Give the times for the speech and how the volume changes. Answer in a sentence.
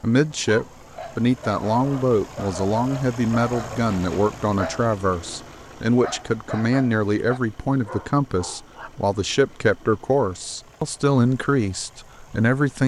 You can hear the speech from 0.0 to 12.8 s, at a steady volume.